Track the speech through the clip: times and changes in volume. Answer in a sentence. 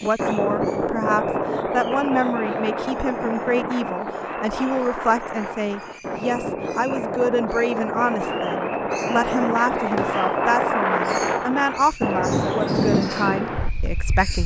You can hear the speech from 0.0 to 14.4 s, at a steady volume.